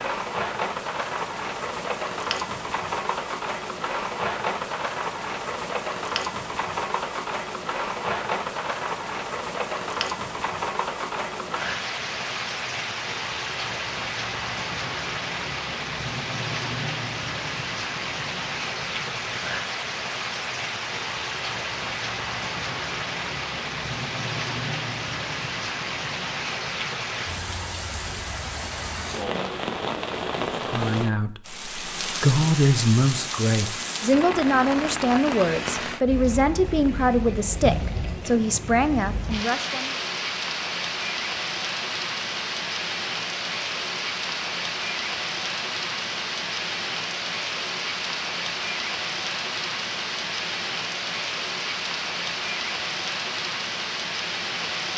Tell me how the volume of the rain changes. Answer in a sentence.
The loudness of the rain stays about the same.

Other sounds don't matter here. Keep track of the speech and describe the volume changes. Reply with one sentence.
The volume of the speech stays about the same.